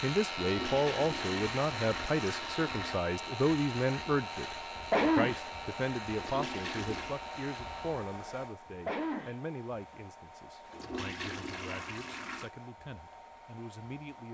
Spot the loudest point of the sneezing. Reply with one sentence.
The volume of the sneezing peaks at 5 seconds.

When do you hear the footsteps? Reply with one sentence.
The footsteps can't be heard in this clip.